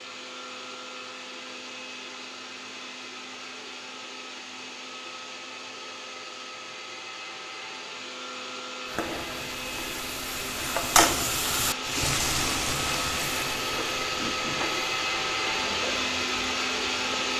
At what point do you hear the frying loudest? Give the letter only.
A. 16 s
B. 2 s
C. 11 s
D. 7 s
C.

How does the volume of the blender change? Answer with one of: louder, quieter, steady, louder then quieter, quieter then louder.
louder.